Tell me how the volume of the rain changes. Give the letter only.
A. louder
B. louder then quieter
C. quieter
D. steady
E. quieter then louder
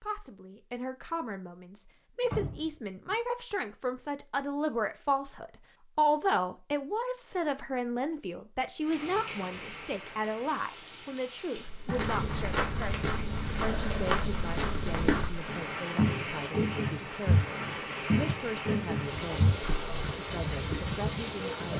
A.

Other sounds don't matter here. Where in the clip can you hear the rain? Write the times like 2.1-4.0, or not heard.
8.8-21.7.